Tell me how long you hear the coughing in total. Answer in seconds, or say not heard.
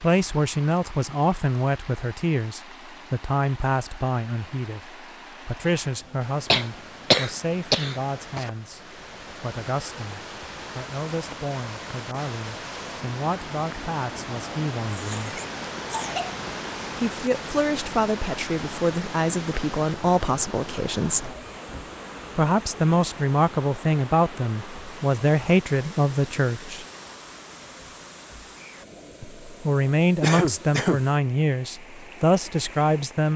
4 s.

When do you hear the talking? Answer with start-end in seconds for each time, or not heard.
0.0-15.4, 16.9-21.4, 22.4-26.9, 29.2-33.3.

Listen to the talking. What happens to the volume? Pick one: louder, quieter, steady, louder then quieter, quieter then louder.
quieter then louder.